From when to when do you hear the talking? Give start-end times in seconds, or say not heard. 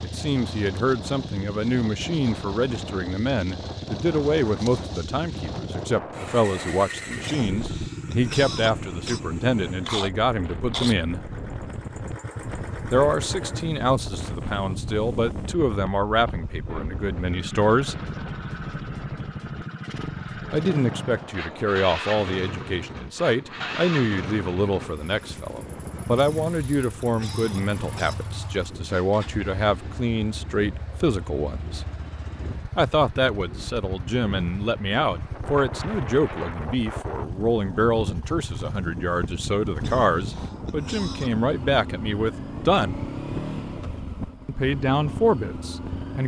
0.0-11.2, 12.9-17.9, 20.5-31.9, 32.8-43.0, 44.5-46.2.